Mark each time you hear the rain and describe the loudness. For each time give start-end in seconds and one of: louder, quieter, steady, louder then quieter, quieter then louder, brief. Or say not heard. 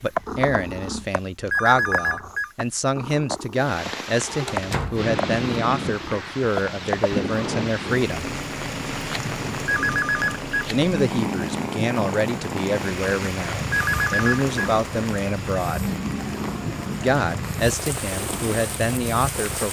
3.6-19.6 steady.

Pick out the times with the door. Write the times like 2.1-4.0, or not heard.
4.5-5.0.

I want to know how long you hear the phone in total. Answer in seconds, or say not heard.
3 s.